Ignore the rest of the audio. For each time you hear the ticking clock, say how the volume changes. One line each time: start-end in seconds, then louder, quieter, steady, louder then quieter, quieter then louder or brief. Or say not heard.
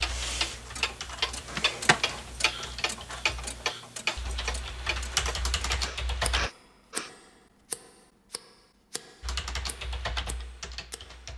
0.0-11.3 quieter.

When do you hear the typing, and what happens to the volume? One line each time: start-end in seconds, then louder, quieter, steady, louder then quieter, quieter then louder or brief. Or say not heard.
0.0-6.5 louder
9.2-11.3 brief.